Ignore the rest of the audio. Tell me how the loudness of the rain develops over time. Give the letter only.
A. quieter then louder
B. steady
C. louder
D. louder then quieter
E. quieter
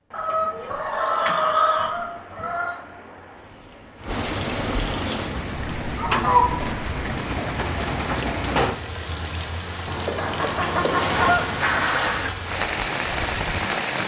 C.